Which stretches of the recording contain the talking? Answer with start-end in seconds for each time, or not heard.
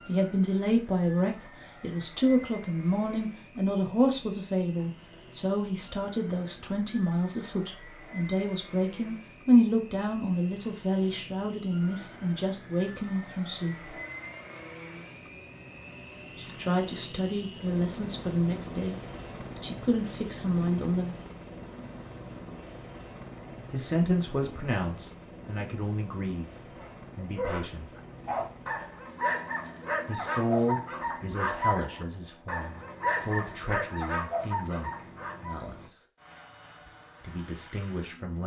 0.1-13.9, 16.4-21.2, 23.7-27.9, 30.1-36.0, 37.2-38.4.